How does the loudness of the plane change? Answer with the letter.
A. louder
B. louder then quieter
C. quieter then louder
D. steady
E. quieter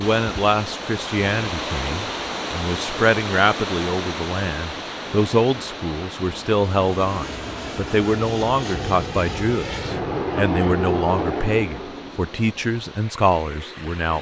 B.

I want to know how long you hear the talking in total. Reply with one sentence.
The talking can be heard for 14 seconds in total.